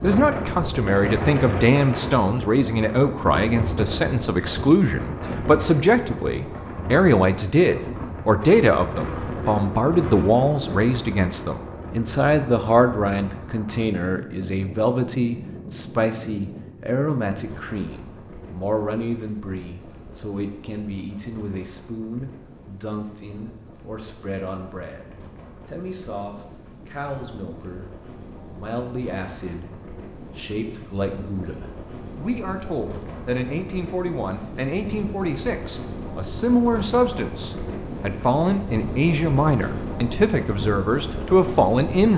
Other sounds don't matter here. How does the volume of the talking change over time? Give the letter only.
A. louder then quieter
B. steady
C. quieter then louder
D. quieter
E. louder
C.